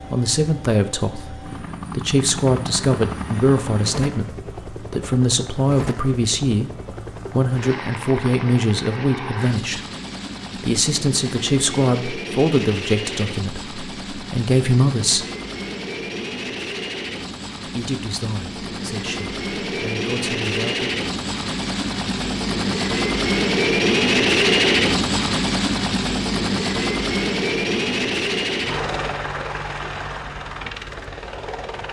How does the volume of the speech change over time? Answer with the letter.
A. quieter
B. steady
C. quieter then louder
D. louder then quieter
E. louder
A.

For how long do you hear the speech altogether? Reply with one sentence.
You can hear the speech for 18 seconds altogether.